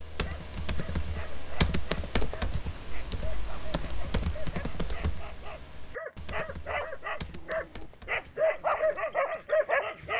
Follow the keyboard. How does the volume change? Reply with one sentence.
The volume of the keyboard goes down.